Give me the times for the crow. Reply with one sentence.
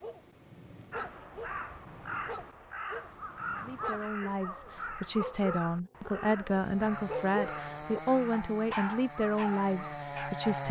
You can hear the crow from 0.9 to 10.0 s.